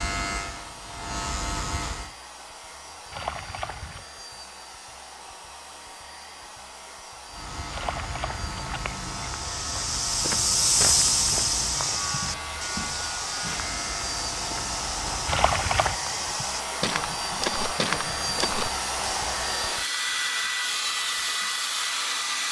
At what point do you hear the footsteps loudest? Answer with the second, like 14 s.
11 s.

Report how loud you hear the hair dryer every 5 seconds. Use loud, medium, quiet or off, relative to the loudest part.
quiet, quiet, medium, loud, loud.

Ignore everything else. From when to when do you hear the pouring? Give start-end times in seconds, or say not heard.
3.1-4.0, 7.7-9.1, 15.2-15.9.